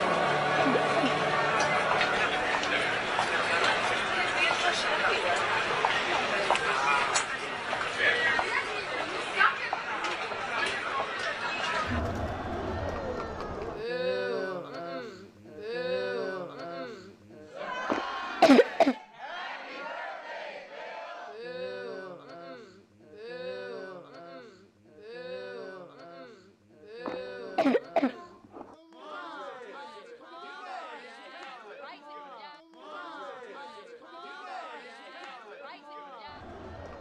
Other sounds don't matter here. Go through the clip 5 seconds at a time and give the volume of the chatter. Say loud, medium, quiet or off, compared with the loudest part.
loud, loud, medium, medium, quiet, quiet, quiet, quiet.